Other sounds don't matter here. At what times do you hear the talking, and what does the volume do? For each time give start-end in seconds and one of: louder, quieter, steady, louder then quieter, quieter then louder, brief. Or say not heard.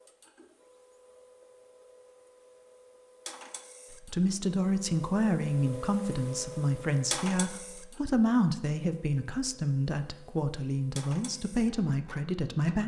3.9-12.8 steady.